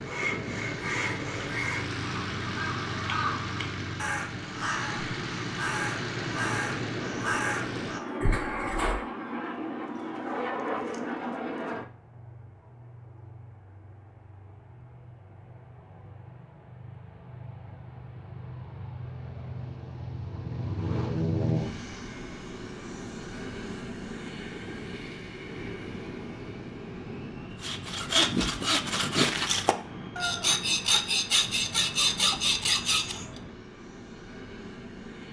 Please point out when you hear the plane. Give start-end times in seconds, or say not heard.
0.0-35.2.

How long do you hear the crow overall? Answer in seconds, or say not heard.
8 s.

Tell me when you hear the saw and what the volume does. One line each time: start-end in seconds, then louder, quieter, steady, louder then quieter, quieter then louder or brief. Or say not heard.
0.0-1.9 brief
27.6-33.2 steady.